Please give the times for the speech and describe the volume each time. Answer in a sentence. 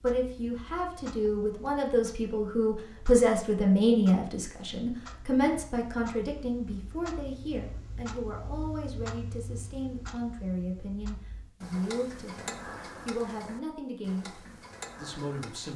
You can hear the speech from 0.0 to 15.7 s, getting quieter.